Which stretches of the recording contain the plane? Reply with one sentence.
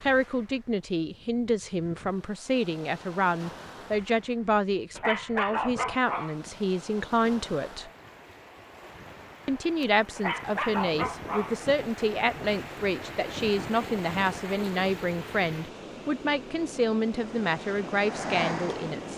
The plane can be heard from 17.1 to 19.1 s.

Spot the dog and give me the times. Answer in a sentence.
The dog can be heard from 5.0 to 6.5 s and from 10.2 to 11.7 s.